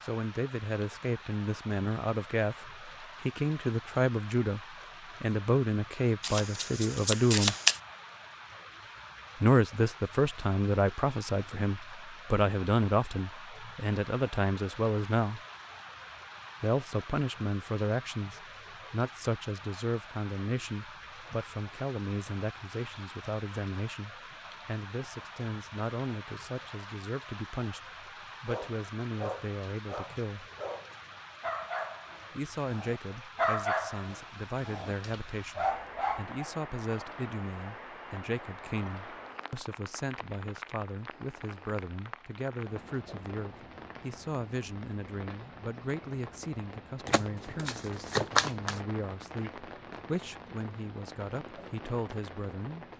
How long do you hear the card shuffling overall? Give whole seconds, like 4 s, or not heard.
3 s.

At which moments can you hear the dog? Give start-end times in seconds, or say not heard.
28.4-36.5.